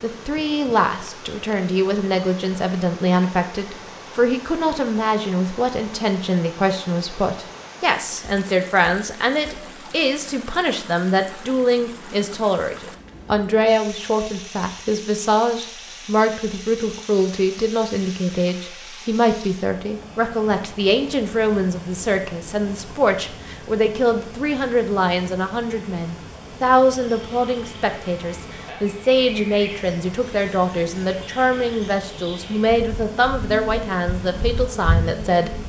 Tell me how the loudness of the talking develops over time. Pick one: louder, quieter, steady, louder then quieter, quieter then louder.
steady.